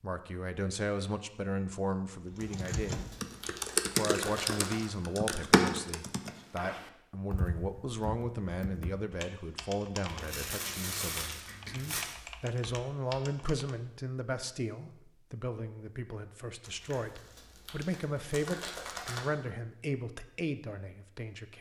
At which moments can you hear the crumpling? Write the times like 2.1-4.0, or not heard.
2.4-4.9, 10.1-12.2, 16.6-19.3.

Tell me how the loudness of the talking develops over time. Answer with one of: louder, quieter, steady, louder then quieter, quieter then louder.
steady.